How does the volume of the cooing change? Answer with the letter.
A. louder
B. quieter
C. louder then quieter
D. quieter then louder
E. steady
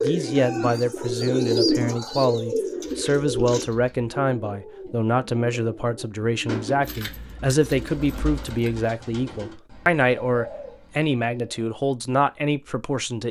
B.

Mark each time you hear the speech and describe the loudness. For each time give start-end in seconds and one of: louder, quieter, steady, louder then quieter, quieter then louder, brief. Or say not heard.
0.0-13.2 steady.